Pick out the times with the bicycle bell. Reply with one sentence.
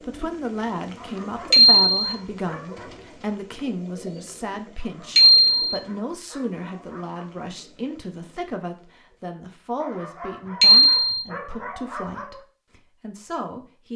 You can hear the bicycle bell from 1.5 to 2.0 s, from 5.2 to 5.8 s and from 10.6 to 11.2 s.